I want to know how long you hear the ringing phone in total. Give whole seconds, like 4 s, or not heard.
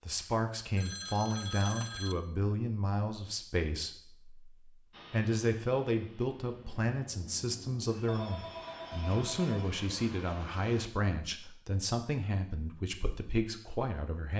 4 s.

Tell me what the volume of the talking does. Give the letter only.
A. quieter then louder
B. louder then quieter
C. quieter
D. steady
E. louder
D.